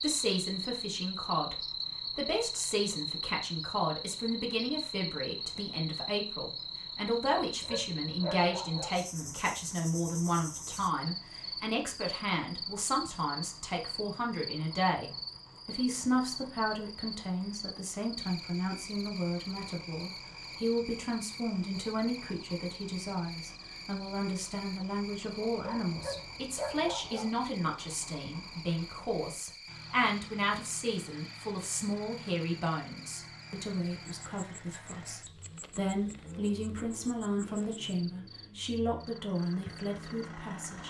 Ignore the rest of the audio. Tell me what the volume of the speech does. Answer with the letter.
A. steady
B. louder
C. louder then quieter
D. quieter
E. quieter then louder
A.